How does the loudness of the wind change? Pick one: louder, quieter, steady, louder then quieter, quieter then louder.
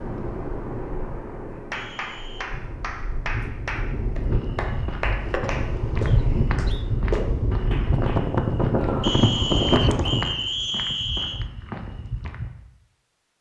louder.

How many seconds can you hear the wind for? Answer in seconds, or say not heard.
10 s.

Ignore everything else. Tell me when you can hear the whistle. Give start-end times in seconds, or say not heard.
1.7-2.5, 6.0-6.9, 9.0-11.4.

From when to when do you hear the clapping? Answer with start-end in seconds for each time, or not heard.
1.6-10.2.